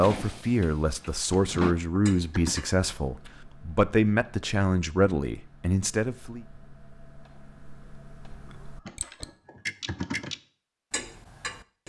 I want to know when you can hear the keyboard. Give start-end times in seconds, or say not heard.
0.9-2.6, 8.8-10.3.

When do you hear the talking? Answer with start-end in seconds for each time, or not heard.
0.0-6.4.